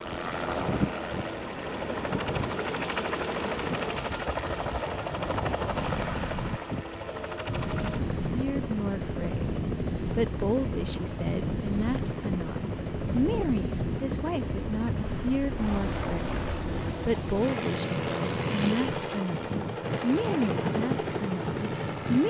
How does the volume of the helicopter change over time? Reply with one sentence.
The volume of the helicopter stays about the same.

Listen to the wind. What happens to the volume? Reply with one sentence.
The volume of the wind stays about the same.